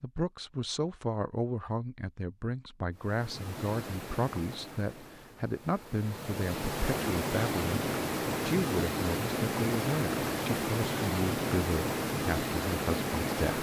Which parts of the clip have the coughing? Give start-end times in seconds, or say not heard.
not heard.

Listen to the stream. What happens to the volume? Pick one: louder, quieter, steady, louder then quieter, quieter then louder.
louder.